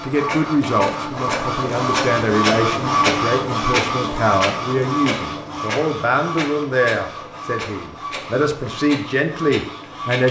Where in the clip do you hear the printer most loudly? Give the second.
3 s.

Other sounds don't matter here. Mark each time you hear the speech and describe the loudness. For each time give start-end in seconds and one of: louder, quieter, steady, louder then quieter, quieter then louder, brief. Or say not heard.
0.0-10.2 steady.